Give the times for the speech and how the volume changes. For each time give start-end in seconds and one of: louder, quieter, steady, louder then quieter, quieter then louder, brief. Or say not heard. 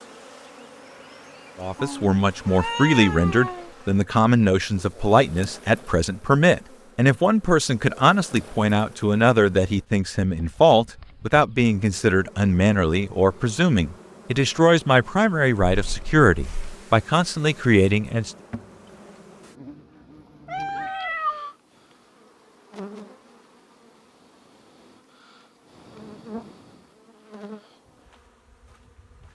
1.6-18.3 steady.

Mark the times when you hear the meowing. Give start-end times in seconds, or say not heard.
1.8-3.7, 15.7-16.8, 20.4-21.6.